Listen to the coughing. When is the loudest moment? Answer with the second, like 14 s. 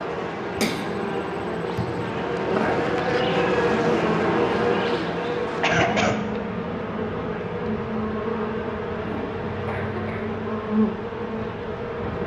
6 s.